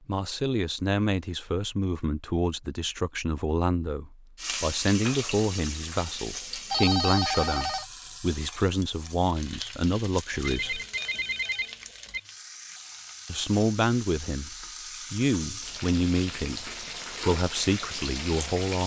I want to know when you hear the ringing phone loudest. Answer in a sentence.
The volume of the ringing phone peaks at 7 seconds.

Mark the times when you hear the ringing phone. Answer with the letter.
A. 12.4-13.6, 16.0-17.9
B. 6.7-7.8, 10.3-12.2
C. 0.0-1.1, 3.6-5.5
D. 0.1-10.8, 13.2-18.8
B.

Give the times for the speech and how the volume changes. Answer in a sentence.
You can hear the speech from 0.1 to 10.8 s, at a steady volume; and from 13.2 to 18.8 s, at a steady volume.